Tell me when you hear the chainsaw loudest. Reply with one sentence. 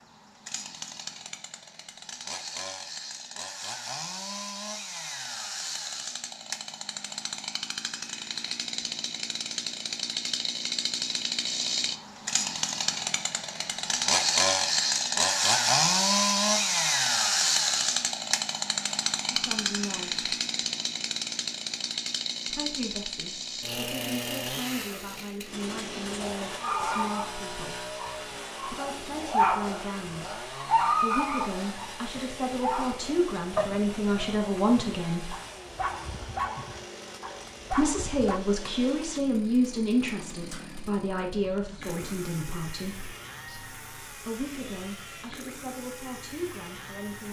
The volume of the chainsaw peaks at 16 seconds.